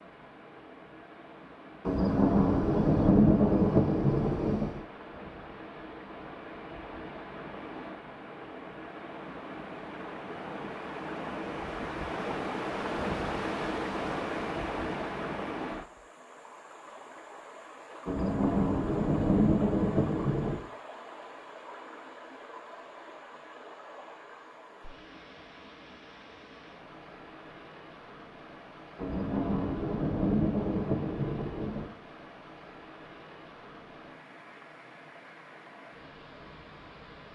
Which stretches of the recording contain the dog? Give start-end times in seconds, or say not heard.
not heard.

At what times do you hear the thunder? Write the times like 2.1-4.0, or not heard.
1.9-4.8, 18.1-20.6, 28.9-31.9.